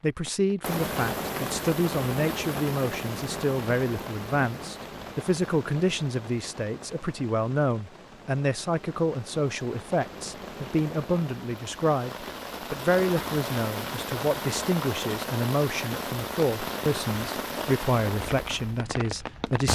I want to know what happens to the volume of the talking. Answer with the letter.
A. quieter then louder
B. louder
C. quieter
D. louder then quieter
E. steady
E.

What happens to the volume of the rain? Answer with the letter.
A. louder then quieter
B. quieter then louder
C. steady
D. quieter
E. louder
B.